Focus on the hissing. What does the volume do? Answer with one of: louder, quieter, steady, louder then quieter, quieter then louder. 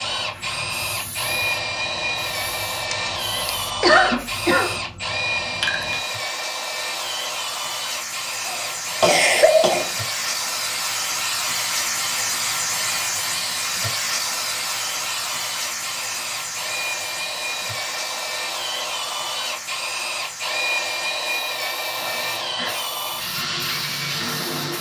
louder then quieter.